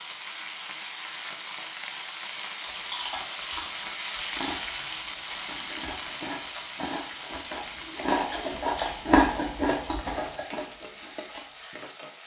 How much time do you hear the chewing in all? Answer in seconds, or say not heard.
9 s.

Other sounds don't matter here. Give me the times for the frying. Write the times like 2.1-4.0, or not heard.
0.0-12.2.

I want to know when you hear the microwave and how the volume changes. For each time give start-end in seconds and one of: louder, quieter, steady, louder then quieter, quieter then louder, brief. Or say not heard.
not heard.